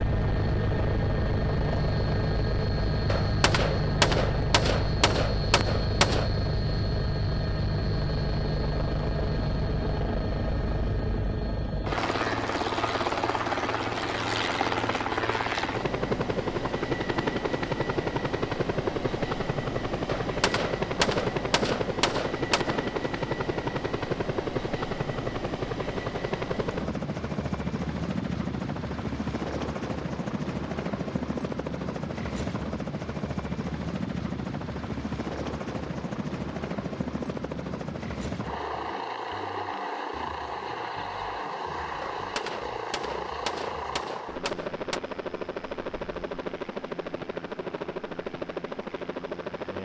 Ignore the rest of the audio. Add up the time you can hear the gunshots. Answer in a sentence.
The gunshots can be heard for 9 seconds in total.